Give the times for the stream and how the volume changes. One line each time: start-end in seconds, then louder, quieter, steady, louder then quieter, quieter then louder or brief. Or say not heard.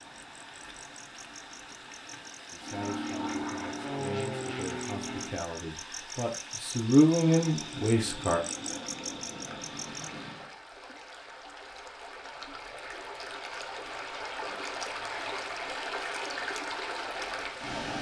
0.0-17.9 louder.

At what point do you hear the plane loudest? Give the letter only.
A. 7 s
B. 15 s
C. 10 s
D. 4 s
D.